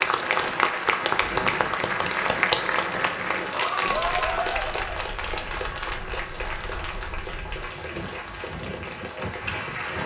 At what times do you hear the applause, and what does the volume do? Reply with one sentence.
The applause can be heard from 0.0 to 10.0 s, getting quieter.